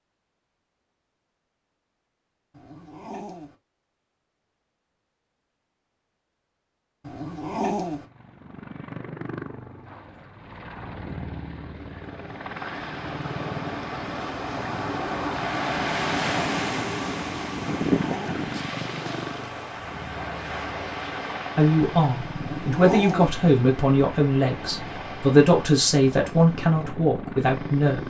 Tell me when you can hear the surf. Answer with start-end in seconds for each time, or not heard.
11.9-28.0.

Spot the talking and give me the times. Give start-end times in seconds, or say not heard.
21.6-28.0.